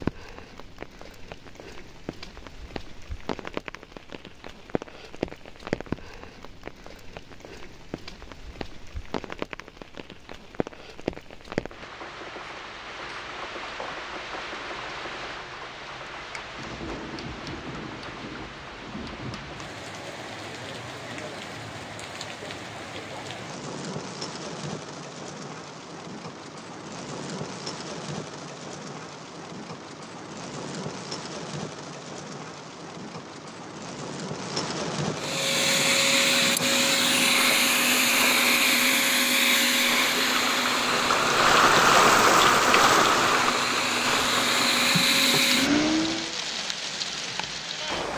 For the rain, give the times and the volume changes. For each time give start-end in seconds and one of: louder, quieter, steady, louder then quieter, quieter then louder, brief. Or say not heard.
0.0-48.1 louder.